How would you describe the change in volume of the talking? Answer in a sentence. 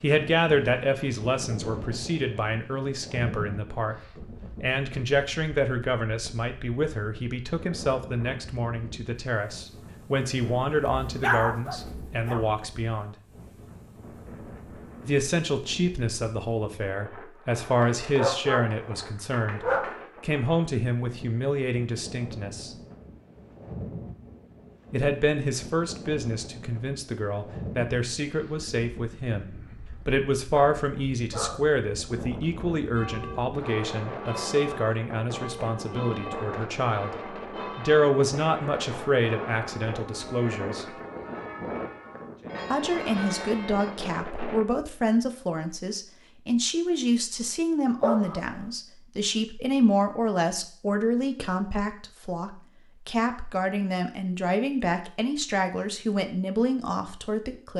The volume of the talking stays about the same.